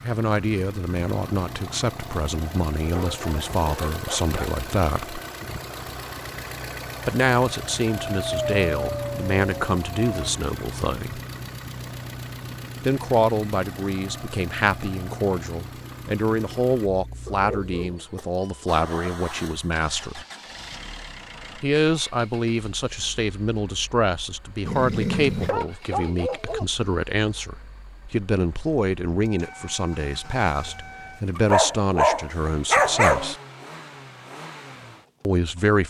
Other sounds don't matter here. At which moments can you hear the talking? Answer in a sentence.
The talking can be heard from 0.0 to 5.2 s, from 7.0 to 11.2 s, from 12.8 to 20.2 s, from 21.6 to 33.4 s and from 35.2 to 35.8 s.